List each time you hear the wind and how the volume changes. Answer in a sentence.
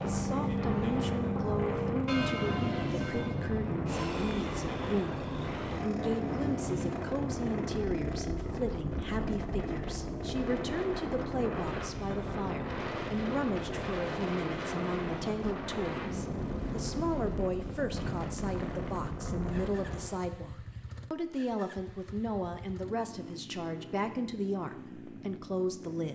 The wind can be heard from 0.0 to 20.2 s, at a steady volume.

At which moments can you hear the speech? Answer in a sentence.
You can hear the speech from 0.0 to 26.1 s.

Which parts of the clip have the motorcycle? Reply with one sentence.
The motorcycle can be heard from 0.0 to 26.1 s.